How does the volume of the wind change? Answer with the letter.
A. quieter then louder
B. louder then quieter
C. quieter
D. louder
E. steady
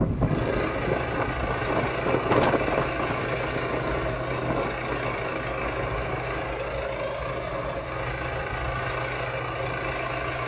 C.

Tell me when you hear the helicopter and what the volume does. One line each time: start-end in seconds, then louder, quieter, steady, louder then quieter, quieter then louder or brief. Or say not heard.
0.0-10.4 steady.